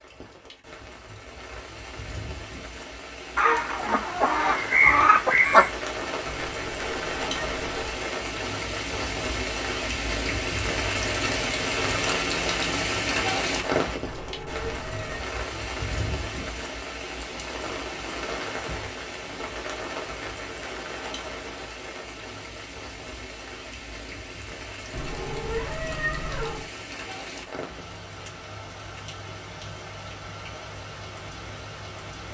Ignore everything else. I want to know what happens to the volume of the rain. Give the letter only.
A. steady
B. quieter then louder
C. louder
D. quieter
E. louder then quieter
E.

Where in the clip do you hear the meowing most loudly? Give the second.
26 s.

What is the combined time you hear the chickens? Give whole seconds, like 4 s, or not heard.
2 s.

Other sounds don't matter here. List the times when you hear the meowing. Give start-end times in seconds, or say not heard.
6.5-8.0, 14.0-15.2, 24.9-26.6.